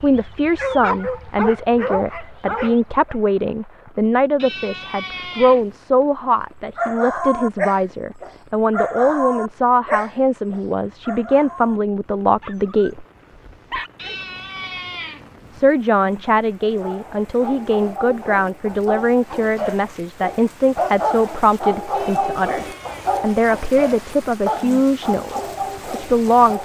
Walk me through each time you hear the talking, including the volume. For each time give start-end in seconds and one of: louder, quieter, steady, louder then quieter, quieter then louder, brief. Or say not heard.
0.0-13.1 steady
15.5-26.5 steady.